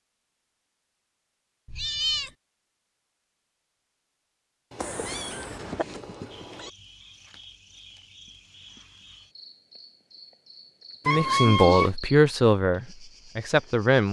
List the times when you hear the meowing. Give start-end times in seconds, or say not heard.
1.6-2.3, 4.7-6.7, 11.1-11.9.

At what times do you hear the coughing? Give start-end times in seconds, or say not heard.
4.8-5.8.